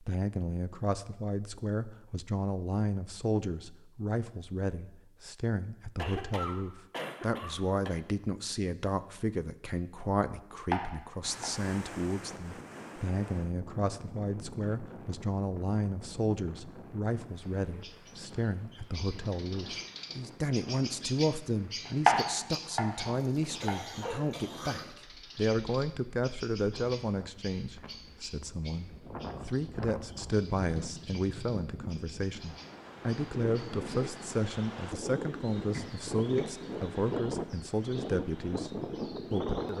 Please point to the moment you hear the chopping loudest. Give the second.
22 s.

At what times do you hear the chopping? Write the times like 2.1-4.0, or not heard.
10.5-11.7, 21.9-24.1.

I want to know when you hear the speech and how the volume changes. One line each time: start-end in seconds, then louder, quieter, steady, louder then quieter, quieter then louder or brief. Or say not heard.
0.0-39.7 steady.